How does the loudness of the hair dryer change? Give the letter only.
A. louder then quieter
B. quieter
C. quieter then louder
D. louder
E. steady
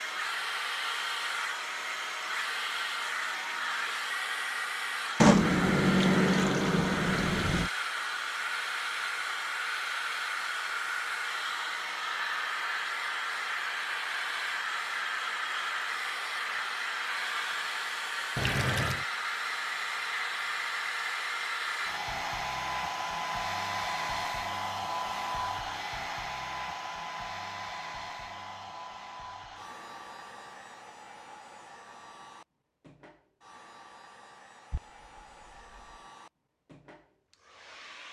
B.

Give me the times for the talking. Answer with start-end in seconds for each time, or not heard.
not heard.